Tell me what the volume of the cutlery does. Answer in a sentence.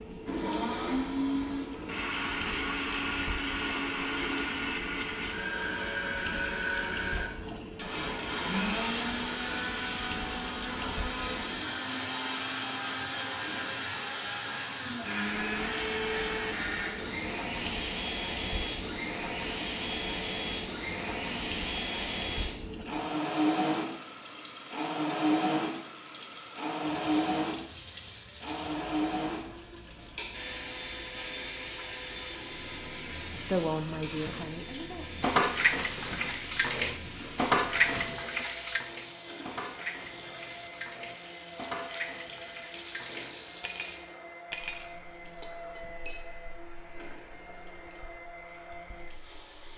The loudness of the cutlery goes down.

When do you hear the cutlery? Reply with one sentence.
You can hear the cutlery from 34.1 to 46.3 s.